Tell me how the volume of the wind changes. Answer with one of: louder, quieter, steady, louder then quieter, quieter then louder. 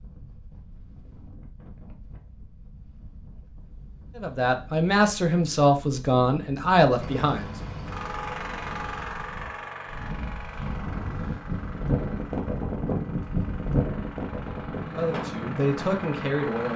louder.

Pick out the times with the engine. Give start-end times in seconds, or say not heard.
7.0-16.7.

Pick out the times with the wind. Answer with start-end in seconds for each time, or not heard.
0.0-16.7.